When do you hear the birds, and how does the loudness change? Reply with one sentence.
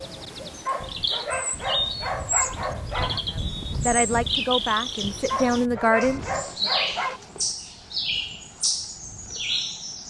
The birds can be heard from 0.0 to 10.0 s, at a steady volume.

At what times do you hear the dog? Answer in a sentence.
The dog can be heard from 0.7 to 3.2 s and from 5.2 to 7.2 s.